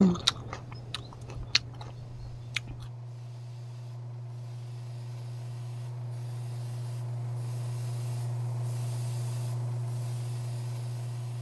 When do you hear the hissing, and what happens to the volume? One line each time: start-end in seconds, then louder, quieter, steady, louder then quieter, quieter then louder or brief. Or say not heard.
0.2-11.3 louder.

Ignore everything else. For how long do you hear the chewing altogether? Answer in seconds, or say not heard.
3 s.